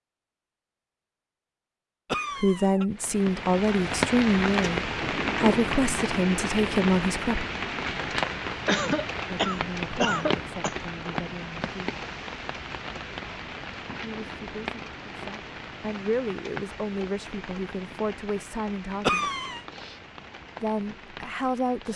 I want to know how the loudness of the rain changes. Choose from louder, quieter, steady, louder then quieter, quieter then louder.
quieter.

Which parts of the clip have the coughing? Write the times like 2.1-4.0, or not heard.
2.0-2.9, 8.7-11.2, 19.0-19.6.